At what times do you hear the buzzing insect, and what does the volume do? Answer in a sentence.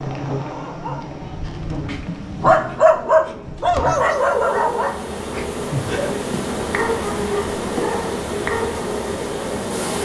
You can hear the buzzing insect from 0.0 to 10.0 s, getting louder.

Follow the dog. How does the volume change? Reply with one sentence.
The volume of the dog goes up, then down.